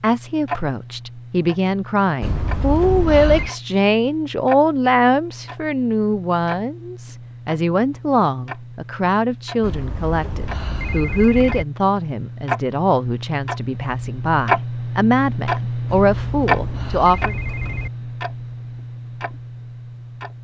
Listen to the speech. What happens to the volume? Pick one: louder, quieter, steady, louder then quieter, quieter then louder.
steady.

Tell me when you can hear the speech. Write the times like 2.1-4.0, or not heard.
0.0-17.4.